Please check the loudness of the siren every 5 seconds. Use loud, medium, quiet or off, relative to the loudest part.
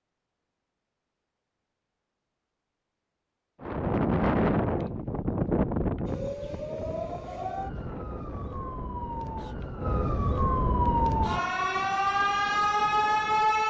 off, medium, loud.